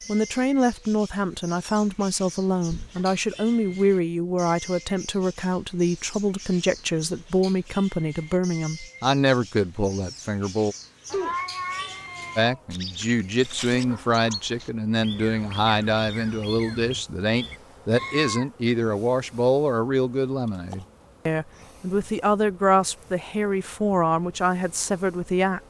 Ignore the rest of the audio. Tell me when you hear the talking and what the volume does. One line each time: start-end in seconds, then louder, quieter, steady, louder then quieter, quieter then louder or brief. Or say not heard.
0.1-10.8 steady
12.3-25.6 steady.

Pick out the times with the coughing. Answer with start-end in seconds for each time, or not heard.
not heard.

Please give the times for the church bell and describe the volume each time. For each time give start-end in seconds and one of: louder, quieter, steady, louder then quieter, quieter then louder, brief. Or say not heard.
not heard.